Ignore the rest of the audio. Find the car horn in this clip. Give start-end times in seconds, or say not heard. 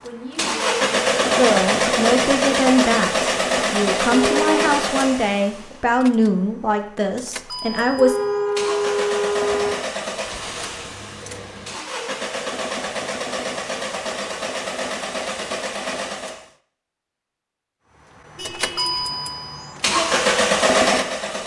4.1-4.5, 7.8-9.8, 18.4-19.0.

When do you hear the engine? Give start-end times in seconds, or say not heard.
0.0-16.5, 18.4-21.4.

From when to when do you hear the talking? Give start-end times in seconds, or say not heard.
0.0-8.2.